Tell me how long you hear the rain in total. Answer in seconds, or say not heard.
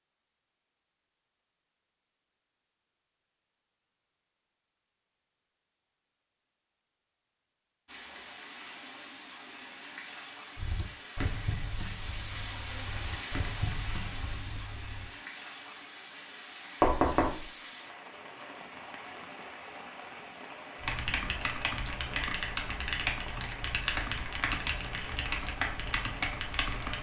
19 s.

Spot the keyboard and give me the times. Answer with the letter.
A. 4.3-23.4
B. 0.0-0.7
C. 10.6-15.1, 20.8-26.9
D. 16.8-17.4
C.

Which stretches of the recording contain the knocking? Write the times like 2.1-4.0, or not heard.
16.8-17.4.